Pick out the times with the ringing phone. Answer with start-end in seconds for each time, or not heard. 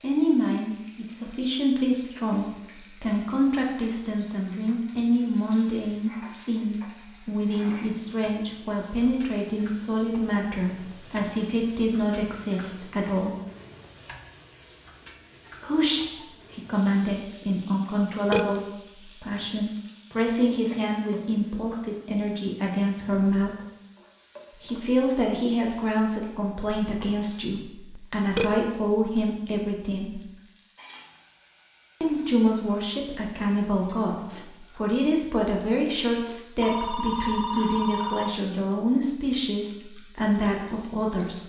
36.6-38.4.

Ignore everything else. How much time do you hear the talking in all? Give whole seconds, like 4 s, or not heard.
36 s.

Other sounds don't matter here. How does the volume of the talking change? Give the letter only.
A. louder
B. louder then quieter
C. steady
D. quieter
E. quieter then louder
C.